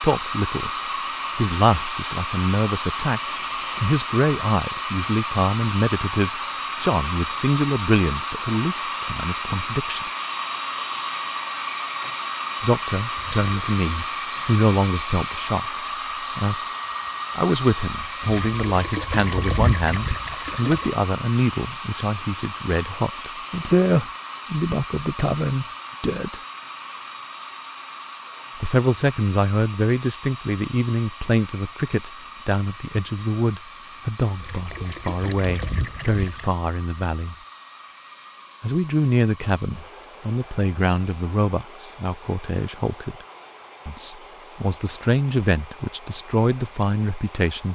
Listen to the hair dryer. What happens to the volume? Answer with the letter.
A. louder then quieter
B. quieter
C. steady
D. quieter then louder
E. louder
B.